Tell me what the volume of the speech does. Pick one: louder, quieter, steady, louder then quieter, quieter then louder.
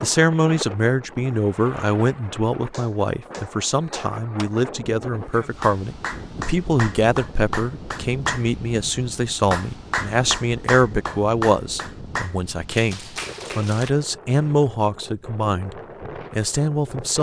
steady.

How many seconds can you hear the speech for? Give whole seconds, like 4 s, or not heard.
17 s.